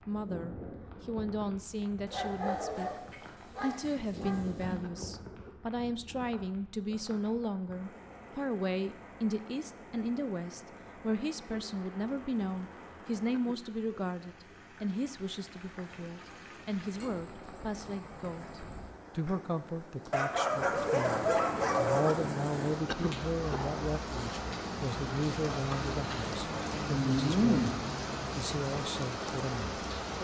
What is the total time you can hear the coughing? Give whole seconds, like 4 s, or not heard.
2 s.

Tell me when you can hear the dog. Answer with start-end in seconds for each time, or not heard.
2.0-4.8, 20.1-22.1.